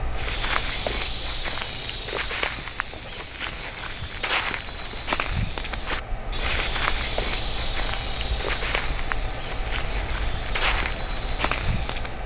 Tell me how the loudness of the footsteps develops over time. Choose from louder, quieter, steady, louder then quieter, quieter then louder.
steady.